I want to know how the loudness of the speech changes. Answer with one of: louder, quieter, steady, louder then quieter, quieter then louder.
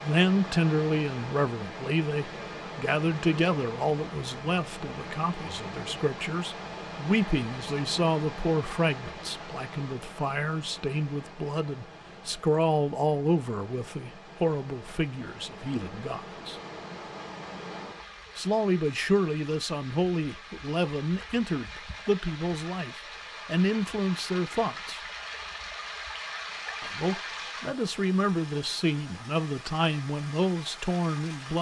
steady.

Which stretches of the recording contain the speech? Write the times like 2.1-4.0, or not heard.
0.0-16.6, 18.4-25.0, 26.8-31.5.